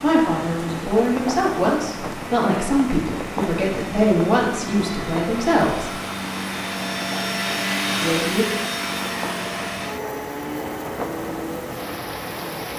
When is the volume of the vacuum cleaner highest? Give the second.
8 s.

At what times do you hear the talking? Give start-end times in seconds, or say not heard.
0.0-6.0, 8.0-8.4.